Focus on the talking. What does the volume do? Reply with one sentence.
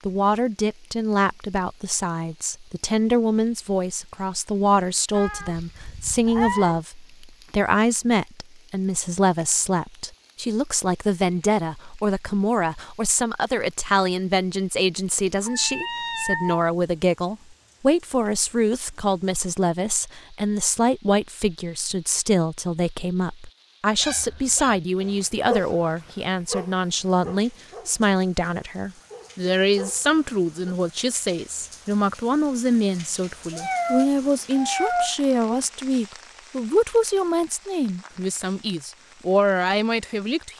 The volume of the talking stays about the same.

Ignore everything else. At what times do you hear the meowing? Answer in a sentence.
You can hear the meowing from 5.1 to 6.8 s, from 15.4 to 16.6 s and from 33.5 to 35.1 s.